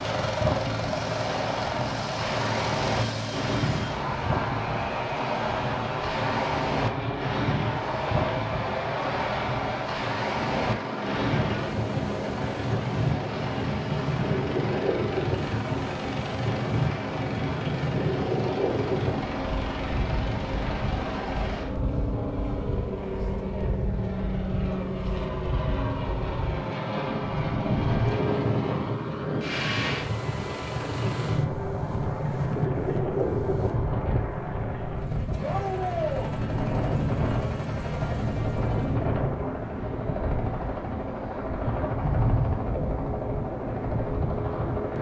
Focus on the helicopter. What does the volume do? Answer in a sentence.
The volume of the helicopter stays about the same.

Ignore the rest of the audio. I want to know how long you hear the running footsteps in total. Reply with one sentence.
You can't hear the running footsteps here.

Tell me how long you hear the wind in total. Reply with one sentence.
The wind can be heard for 45 seconds in total.